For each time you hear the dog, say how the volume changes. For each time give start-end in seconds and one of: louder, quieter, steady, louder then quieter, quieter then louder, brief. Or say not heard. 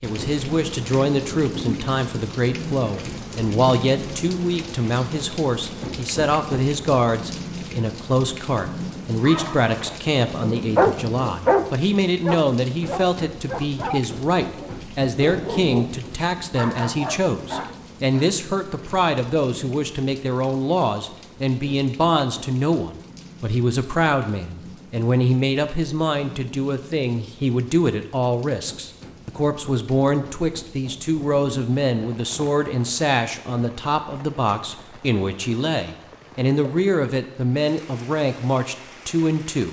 9.2-18.3 quieter.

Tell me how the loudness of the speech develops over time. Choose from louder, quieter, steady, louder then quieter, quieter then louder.
steady.